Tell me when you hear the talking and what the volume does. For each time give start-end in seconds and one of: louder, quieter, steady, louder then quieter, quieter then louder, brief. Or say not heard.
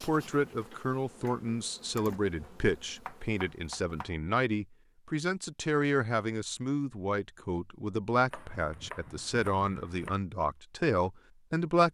0.0-11.8 steady.